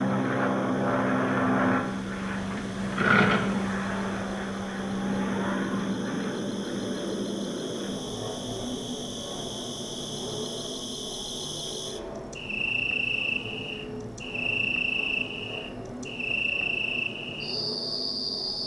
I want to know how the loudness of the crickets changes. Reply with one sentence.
The volume of the crickets goes up.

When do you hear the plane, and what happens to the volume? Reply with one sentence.
The plane can be heard from 0.0 to 18.6 s, getting quieter.